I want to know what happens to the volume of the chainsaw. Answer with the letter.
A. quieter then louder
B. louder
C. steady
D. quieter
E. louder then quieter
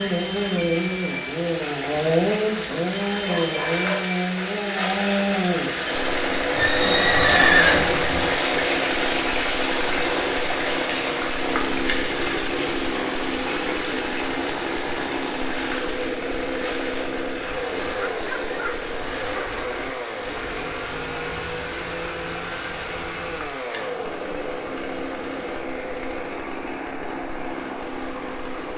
D.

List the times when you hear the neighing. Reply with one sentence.
The neighing can be heard from 6.5 to 8.3 s.